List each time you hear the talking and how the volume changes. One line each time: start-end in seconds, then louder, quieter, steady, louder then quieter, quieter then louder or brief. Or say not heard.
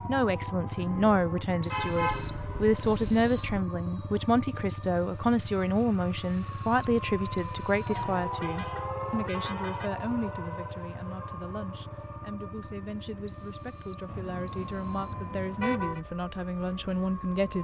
0.1-17.5 quieter then louder.